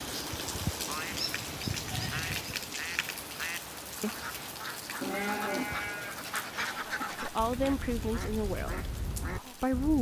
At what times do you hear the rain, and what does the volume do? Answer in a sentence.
The rain can be heard from 0.0 to 9.9 s, getting quieter.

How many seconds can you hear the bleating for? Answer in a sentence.
The bleating can be heard for 3 seconds in total.